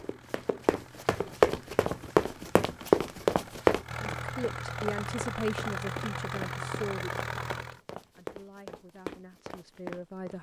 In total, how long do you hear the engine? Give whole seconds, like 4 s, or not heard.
8 s.